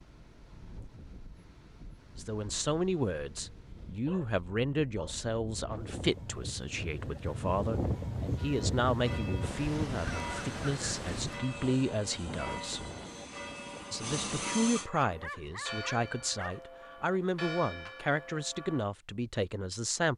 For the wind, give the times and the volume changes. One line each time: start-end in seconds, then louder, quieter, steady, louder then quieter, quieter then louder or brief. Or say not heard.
0.0-14.4 louder then quieter.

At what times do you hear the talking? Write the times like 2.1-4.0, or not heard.
2.1-12.8, 13.9-20.1.